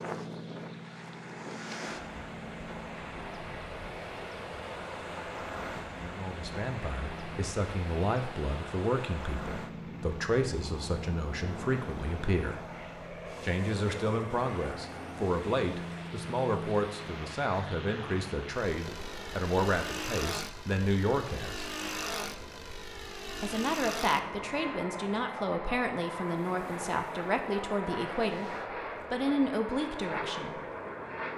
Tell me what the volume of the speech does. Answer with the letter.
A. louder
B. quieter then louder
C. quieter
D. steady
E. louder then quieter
D.